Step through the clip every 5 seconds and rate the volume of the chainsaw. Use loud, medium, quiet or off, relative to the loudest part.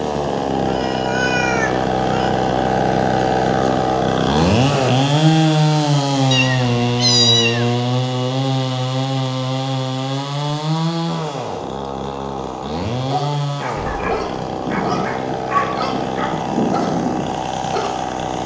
loud, loud, medium, medium.